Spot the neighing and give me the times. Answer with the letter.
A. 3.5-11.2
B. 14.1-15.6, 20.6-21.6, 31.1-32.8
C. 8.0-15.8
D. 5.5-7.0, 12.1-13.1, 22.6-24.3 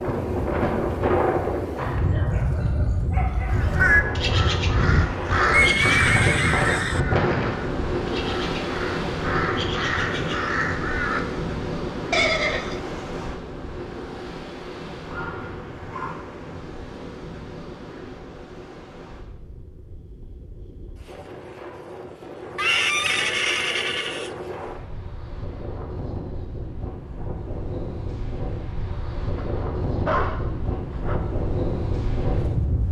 D.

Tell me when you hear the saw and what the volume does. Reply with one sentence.
You can't hear the saw here.